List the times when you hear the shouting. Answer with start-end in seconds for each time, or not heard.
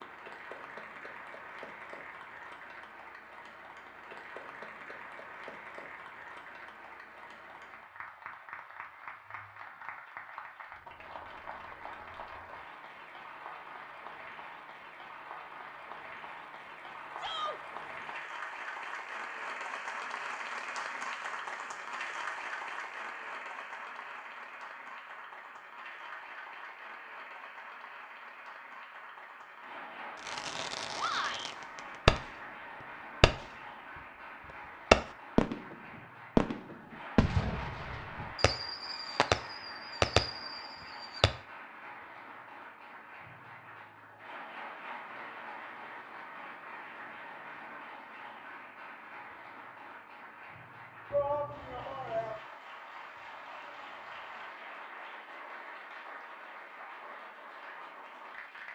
17.1-17.6, 30.9-31.6, 51.1-52.4.